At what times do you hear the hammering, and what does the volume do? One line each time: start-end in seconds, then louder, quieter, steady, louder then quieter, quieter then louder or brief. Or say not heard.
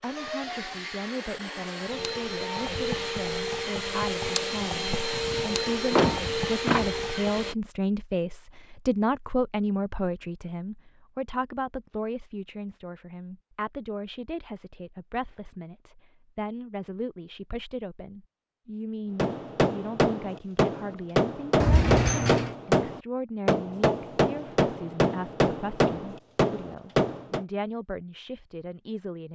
19.1-27.4 steady.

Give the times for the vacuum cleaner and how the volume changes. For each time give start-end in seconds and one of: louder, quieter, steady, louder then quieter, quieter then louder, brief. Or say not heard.
0.0-7.5 louder.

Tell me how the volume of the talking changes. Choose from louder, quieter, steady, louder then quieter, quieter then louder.
louder then quieter.